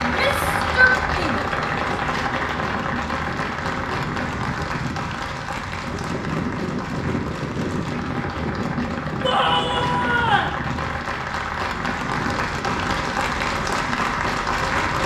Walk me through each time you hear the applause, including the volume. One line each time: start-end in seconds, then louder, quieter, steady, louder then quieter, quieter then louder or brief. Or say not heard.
0.0-15.0 quieter then louder.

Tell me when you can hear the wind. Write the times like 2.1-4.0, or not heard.
0.0-15.0.